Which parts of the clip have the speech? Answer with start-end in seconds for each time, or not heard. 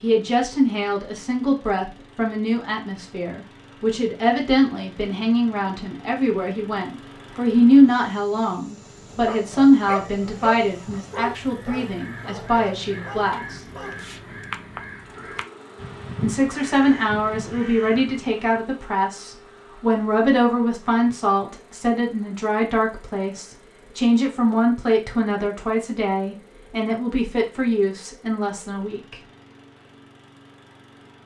0.0-13.6, 16.2-29.1.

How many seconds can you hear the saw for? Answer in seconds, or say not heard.
not heard.